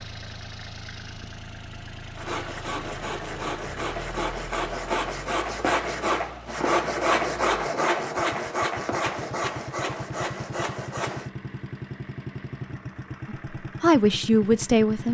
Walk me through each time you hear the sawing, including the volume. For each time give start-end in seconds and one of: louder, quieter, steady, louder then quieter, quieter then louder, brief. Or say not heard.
2.1-11.3 louder then quieter.